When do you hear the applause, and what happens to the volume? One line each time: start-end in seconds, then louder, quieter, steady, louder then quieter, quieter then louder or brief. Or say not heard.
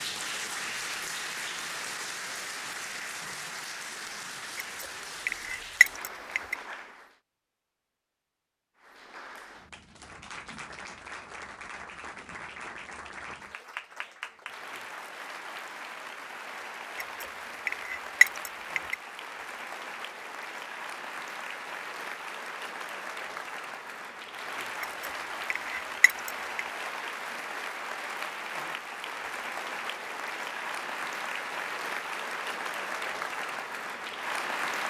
0.0-7.2 quieter
8.8-34.8 louder.